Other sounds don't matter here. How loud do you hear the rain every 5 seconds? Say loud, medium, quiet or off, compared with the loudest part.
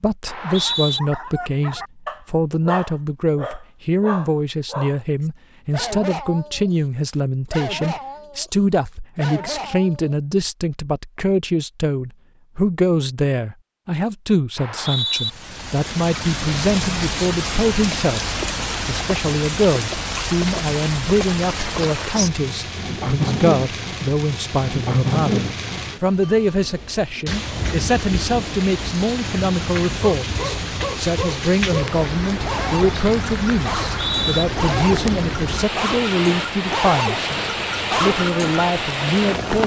off, off, off, loud, loud, loud, loud, loud.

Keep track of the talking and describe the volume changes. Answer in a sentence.
The volume of the talking stays about the same.